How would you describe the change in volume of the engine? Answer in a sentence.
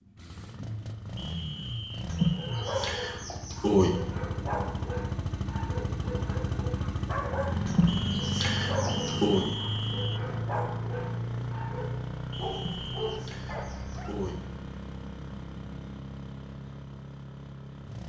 The volume of the engine goes up, then down.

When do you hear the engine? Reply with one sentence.
The engine can be heard from 0.0 to 18.0 s.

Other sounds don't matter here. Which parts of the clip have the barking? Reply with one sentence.
You can hear the barking from 2.2 to 14.2 s.